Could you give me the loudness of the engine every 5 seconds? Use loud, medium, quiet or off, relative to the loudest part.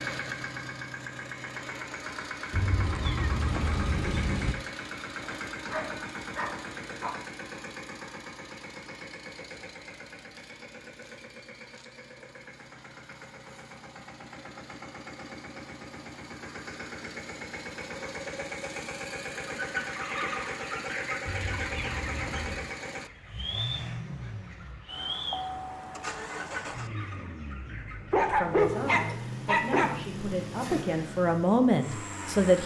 loud, loud, medium, loud, loud, loud, loud.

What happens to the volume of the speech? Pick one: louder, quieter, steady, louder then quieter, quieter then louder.
louder.